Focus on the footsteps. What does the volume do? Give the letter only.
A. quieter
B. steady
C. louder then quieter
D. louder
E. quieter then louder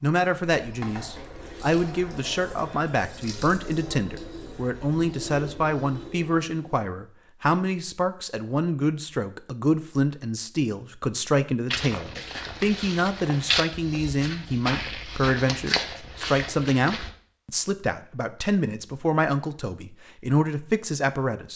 C.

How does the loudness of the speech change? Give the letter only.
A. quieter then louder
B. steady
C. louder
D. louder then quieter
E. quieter
B.